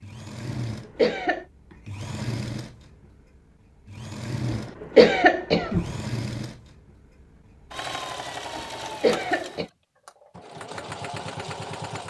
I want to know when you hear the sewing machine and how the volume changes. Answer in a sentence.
You can hear the sewing machine from 0.0 to 12.0 s, at a steady volume.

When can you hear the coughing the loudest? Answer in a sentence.
The loudest moment of the coughing is at 5 seconds.